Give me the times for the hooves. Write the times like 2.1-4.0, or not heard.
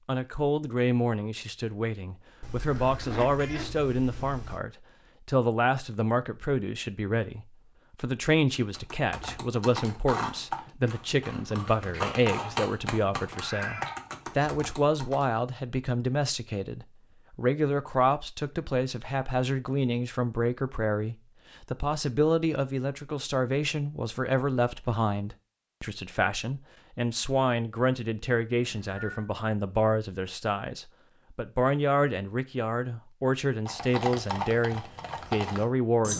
8.6-15.3, 33.6-36.1.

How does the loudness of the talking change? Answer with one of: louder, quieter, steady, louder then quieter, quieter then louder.
steady.